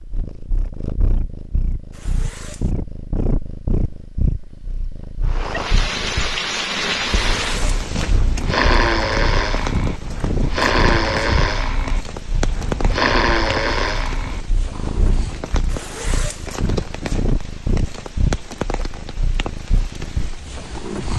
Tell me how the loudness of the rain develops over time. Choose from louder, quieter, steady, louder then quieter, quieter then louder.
quieter.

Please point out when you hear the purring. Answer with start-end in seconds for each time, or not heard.
0.0-21.1.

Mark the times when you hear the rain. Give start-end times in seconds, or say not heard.
5.2-21.1.